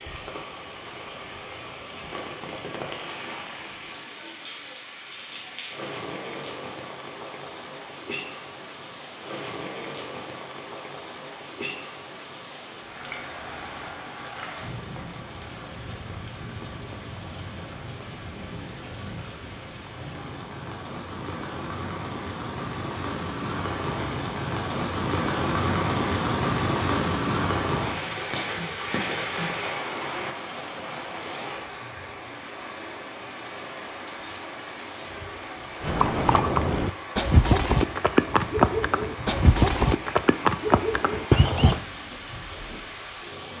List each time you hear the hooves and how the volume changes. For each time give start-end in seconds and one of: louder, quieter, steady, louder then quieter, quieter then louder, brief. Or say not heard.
35.8-41.8 steady.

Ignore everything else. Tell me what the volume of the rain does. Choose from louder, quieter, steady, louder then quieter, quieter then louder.
louder then quieter.